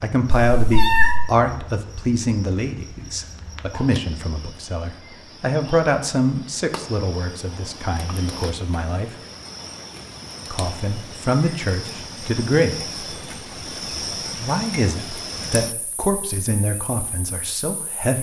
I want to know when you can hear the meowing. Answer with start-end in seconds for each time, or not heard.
0.3-1.2.